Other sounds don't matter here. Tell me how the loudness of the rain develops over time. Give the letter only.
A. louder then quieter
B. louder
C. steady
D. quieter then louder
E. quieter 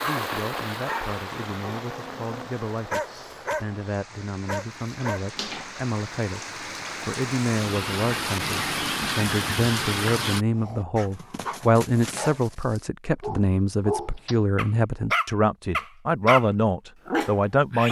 D.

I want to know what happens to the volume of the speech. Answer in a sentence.
The volume of the speech goes up.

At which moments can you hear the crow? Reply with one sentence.
You can't hear the crow here.